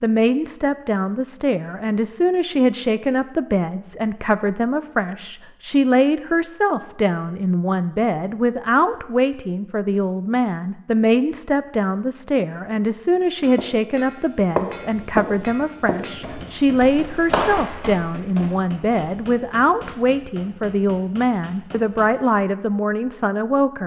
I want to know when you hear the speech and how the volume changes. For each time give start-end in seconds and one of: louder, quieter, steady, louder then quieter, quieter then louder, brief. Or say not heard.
0.0-23.8 steady.